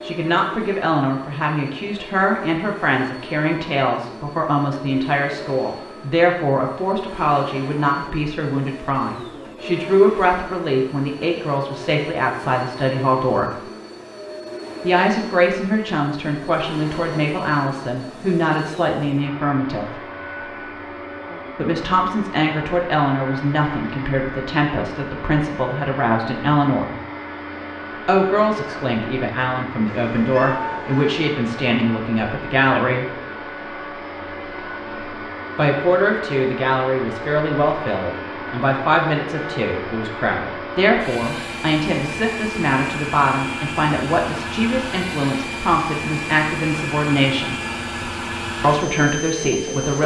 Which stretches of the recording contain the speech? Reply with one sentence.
You can hear the speech from 0.0 to 13.6 s, from 14.8 to 20.0 s, from 21.6 to 26.9 s, from 28.1 to 33.1 s, from 35.5 to 47.5 s and from 48.6 to 50.0 s.